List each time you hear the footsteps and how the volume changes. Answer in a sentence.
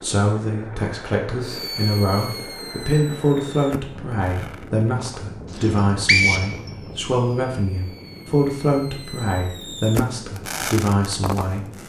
The footsteps can't be heard in this clip.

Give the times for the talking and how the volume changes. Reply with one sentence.
You can hear the talking from 0.0 to 11.7 s, at a steady volume.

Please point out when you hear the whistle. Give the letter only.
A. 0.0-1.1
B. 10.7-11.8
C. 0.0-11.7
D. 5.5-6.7
D.